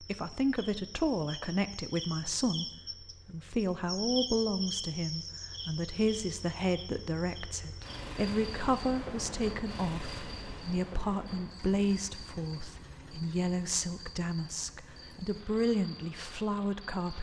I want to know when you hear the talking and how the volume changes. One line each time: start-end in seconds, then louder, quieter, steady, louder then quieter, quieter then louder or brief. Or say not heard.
0.0-17.1 steady.